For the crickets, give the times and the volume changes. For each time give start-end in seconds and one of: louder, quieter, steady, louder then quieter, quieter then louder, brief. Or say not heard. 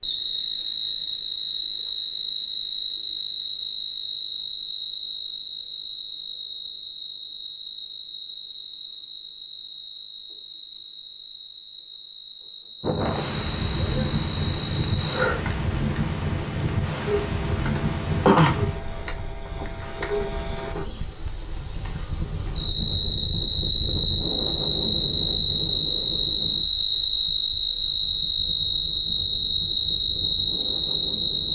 0.0-31.4 quieter then louder.